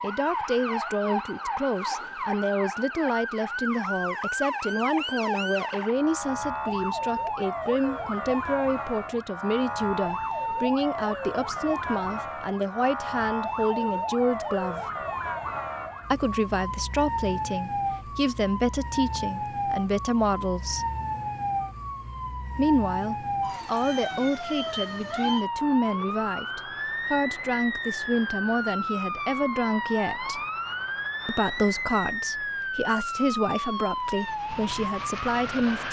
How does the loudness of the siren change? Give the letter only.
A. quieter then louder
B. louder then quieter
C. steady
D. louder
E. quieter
C.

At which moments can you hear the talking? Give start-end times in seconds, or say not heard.
0.0-14.8, 16.1-20.9, 22.6-30.4, 31.2-35.8.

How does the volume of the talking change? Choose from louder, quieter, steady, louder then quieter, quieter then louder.
steady.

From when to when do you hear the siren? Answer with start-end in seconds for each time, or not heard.
0.0-35.8.